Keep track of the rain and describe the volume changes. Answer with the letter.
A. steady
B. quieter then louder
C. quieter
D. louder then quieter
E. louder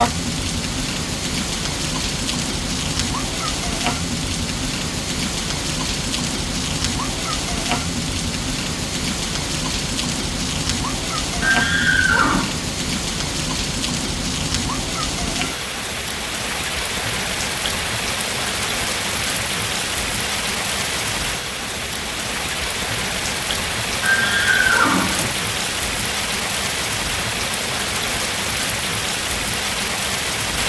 A.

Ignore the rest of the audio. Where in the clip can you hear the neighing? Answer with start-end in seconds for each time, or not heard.
11.4-12.6, 24.0-25.4.